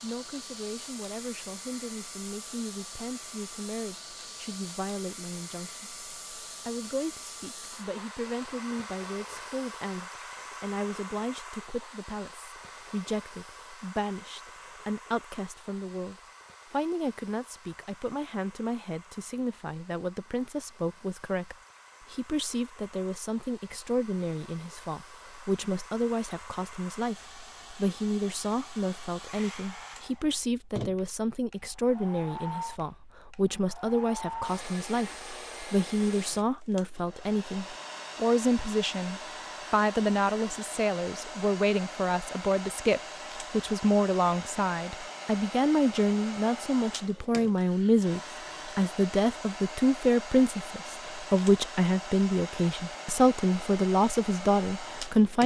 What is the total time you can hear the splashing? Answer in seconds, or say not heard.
not heard.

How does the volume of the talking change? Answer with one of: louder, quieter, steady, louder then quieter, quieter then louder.
louder.